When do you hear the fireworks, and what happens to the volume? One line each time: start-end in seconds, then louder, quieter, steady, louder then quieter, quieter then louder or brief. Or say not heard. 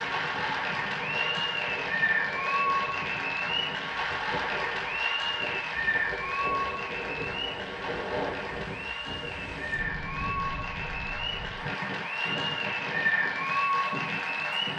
not heard.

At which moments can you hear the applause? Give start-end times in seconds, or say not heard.
0.0-14.7.